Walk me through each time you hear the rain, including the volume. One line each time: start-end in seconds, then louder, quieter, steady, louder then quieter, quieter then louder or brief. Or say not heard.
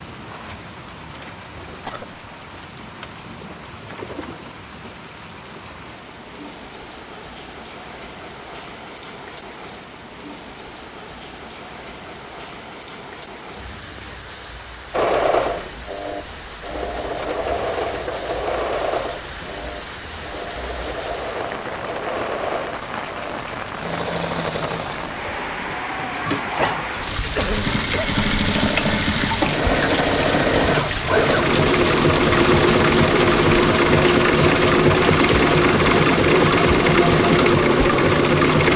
0.0-38.7 louder.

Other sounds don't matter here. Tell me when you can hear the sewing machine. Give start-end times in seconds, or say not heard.
14.9-38.7.